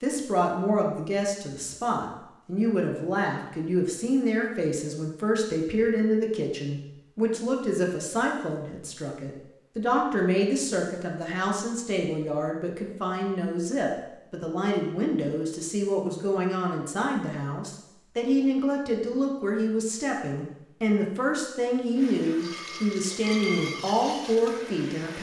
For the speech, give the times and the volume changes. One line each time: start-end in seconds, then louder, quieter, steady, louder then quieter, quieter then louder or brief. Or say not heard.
0.0-25.1 steady.